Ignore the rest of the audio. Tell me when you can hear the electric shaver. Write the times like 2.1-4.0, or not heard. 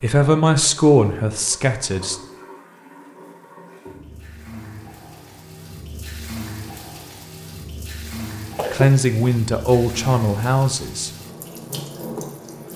not heard.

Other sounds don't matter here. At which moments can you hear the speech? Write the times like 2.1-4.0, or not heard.
0.0-2.1, 8.7-11.1.